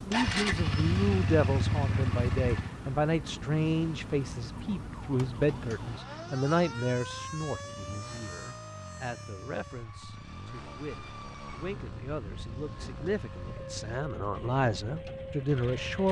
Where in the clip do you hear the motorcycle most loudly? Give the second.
1 s.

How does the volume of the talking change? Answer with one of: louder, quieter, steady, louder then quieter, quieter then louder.
quieter then louder.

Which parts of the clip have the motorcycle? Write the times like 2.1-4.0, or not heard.
0.0-16.0.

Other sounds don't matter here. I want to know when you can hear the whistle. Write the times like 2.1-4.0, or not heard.
not heard.